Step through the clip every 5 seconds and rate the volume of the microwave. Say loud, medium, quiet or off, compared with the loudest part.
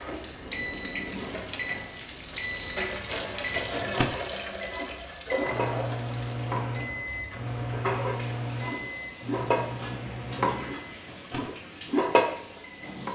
loud, loud, medium.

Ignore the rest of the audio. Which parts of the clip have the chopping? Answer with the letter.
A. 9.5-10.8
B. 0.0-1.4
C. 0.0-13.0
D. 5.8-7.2
A.